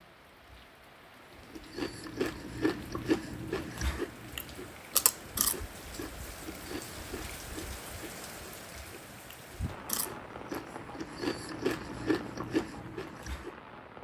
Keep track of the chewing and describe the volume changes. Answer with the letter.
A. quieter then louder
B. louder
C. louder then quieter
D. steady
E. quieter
A.